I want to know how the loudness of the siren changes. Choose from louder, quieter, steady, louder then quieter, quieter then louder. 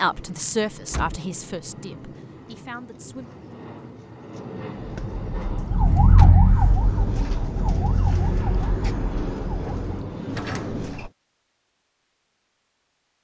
quieter.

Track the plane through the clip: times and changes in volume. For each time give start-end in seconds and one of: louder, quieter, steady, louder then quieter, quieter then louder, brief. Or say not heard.
0.0-11.1 louder.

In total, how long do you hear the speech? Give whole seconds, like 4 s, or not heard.
3 s.